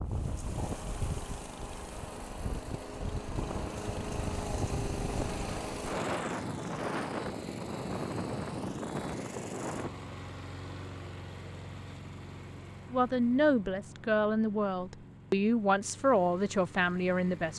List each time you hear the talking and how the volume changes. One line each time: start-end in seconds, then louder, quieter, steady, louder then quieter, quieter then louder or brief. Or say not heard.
12.9-17.5 steady.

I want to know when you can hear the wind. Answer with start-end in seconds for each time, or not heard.
0.0-9.9.